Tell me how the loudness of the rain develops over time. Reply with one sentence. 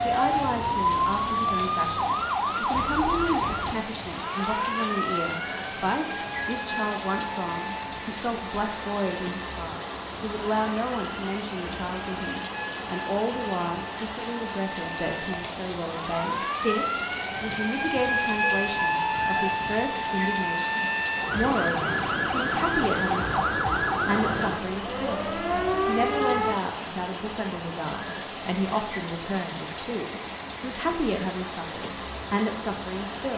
The volume of the rain stays about the same.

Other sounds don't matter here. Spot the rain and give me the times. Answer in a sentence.
You can hear the rain from 0.0 to 33.3 s.